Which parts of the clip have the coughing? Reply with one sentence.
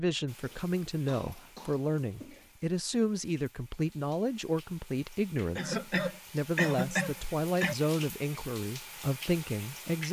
You can hear the coughing from 0.5 to 2.5 s and from 5.5 to 7.8 s.